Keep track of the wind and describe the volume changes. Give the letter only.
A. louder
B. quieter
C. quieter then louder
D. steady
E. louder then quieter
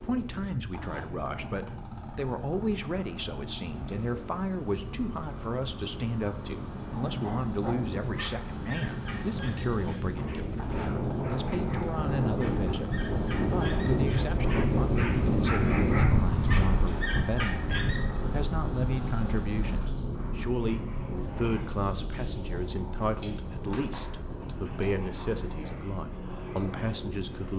E.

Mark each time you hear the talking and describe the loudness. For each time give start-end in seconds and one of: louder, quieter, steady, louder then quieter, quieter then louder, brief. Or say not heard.
0.0-27.5 steady.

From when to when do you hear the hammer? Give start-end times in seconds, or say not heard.
not heard.